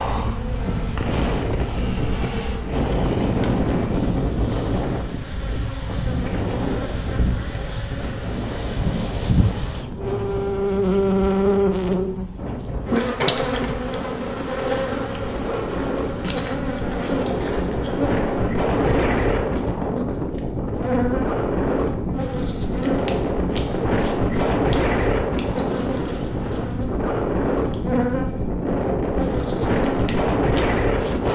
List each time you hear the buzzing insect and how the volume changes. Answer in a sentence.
You can hear the buzzing insect from 0.0 to 31.3 s, getting louder then quieter.